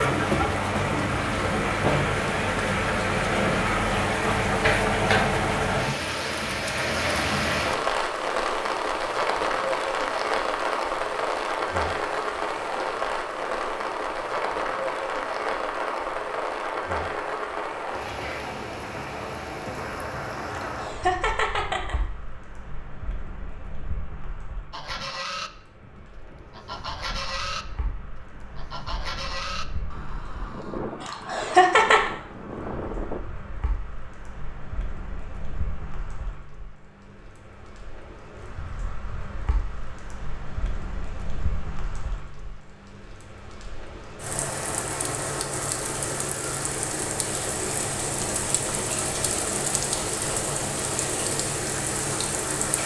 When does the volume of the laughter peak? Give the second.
32 s.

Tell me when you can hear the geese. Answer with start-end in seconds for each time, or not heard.
24.7-33.2.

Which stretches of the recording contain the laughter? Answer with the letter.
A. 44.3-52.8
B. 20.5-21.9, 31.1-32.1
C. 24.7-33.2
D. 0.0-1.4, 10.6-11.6
B.